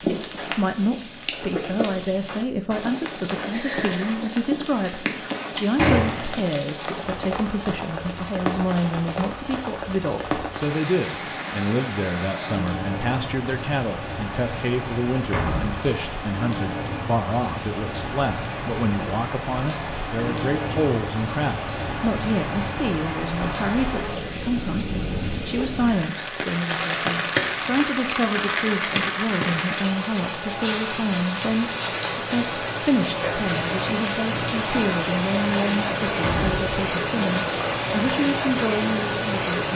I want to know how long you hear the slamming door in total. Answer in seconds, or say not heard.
2 s.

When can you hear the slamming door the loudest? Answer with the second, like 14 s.
6 s.